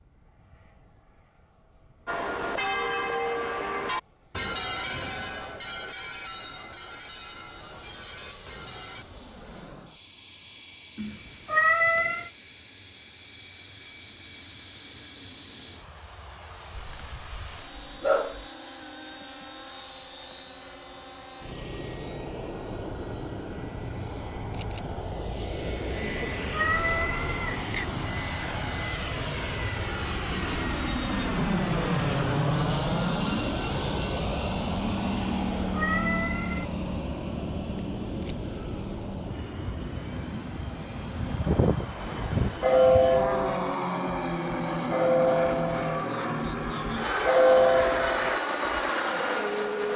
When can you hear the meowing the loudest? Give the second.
12 s.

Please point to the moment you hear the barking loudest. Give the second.
18 s.